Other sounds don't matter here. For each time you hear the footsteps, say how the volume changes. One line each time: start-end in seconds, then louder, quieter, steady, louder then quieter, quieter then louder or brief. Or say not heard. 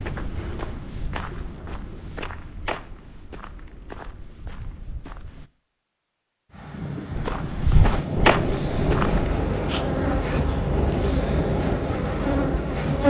0.0-5.5 quieter
7.2-9.4 brief.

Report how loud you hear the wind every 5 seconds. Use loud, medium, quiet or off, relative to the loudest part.
off, loud, loud.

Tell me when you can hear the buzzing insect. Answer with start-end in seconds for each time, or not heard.
8.7-13.0.